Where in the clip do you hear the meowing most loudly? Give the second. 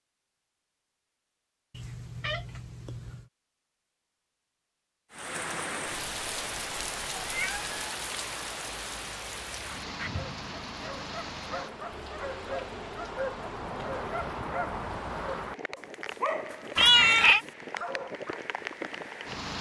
17 s.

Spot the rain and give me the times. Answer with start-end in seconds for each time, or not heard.
5.1-19.5.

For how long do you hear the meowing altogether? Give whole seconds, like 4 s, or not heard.
3 s.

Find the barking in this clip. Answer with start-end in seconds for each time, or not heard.
9.8-18.5.